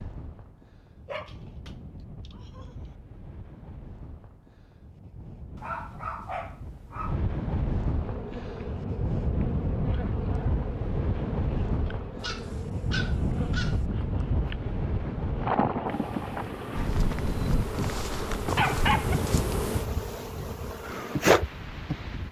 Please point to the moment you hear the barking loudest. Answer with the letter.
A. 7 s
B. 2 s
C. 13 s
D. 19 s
D.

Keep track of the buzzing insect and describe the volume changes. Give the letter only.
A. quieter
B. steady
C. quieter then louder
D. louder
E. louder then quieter
D.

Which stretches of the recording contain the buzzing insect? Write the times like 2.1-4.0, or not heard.
8.0-22.0.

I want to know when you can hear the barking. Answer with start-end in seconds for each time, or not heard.
1.1-2.8, 5.5-7.2, 12.2-13.8, 16.8-19.4.